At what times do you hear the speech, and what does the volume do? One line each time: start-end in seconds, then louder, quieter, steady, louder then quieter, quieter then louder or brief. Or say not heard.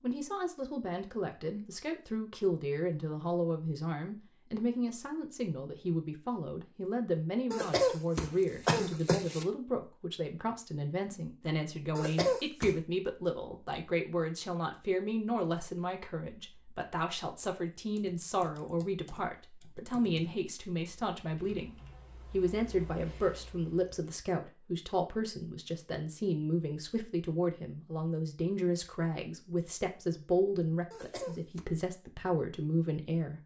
0.0-33.4 steady.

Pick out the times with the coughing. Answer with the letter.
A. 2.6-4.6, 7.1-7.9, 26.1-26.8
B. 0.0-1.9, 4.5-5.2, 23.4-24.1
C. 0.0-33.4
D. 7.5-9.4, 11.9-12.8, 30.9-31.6
D.